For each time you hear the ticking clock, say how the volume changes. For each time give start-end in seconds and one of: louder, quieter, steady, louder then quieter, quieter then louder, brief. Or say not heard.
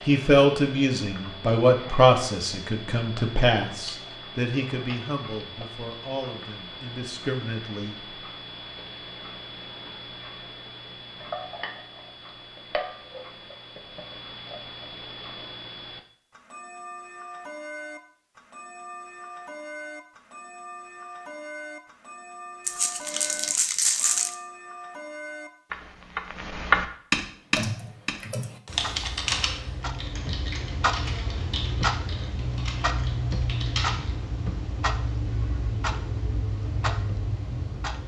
0.0-38.0 louder.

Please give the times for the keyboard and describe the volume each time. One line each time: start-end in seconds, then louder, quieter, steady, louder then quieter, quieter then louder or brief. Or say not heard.
27.6-34.1 quieter.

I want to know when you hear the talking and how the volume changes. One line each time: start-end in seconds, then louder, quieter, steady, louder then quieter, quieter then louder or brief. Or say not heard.
0.1-8.0 quieter.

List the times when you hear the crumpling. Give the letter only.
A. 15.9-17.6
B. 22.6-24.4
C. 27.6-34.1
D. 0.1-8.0
B.